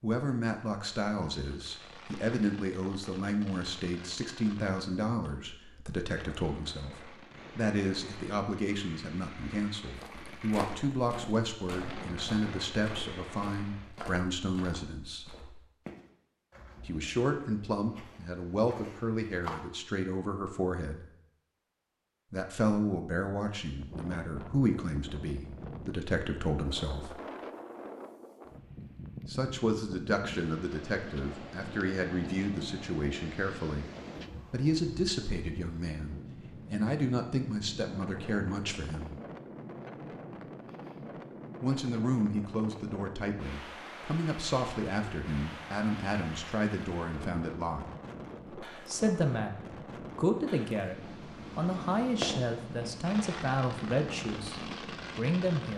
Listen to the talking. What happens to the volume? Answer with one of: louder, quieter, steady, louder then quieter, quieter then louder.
steady.